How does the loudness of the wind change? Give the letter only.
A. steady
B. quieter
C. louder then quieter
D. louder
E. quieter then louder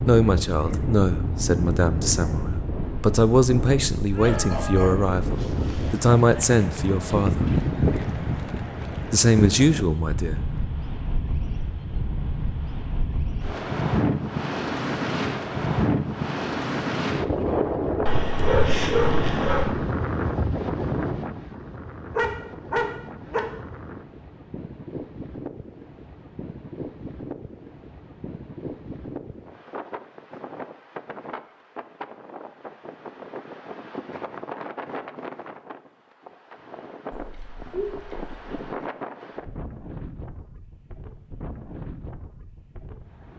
B.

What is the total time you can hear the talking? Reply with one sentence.
You can hear the talking for 9 seconds altogether.